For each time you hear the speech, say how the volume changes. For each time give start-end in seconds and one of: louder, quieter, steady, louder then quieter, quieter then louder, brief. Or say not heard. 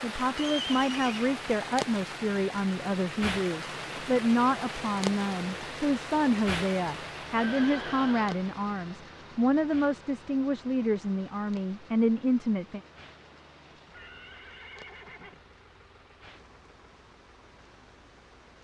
0.0-12.8 steady.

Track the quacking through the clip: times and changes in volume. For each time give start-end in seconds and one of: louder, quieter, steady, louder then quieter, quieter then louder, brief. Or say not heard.
not heard.